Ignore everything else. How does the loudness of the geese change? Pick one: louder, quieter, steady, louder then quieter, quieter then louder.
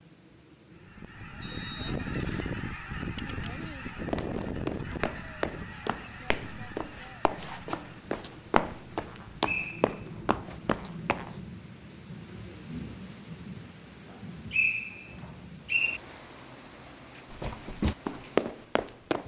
quieter.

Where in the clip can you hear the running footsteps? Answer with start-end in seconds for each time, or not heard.
4.0-11.4, 17.3-19.2.